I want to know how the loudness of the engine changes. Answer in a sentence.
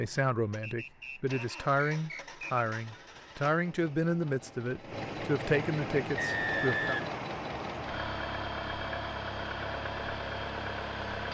The volume of the engine goes up.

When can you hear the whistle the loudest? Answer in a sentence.
The loudest moment of the whistle is at 7 seconds.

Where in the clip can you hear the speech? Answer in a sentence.
You can hear the speech from 0.0 to 7.0 s.